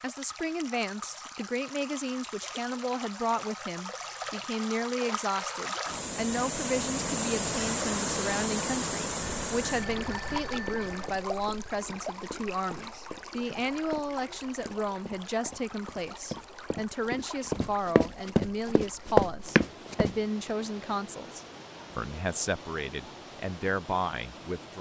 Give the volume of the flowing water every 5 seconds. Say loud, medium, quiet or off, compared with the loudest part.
medium, loud, medium, quiet, quiet.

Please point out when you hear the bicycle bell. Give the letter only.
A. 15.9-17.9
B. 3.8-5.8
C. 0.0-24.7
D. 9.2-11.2
D.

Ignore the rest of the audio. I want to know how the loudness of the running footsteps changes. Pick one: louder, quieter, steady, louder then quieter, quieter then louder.
louder.